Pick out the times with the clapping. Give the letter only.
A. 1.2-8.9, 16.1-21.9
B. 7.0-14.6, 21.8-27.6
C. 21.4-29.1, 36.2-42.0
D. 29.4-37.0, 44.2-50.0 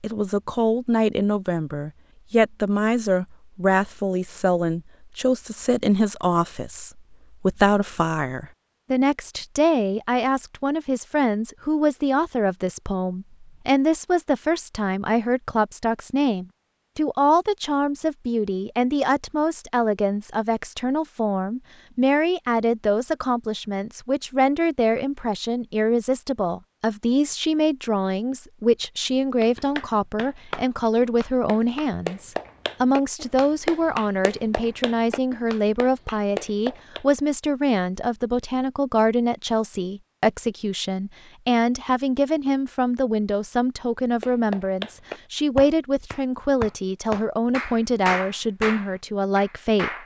D.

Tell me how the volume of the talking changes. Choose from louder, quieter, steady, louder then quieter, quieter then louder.
steady.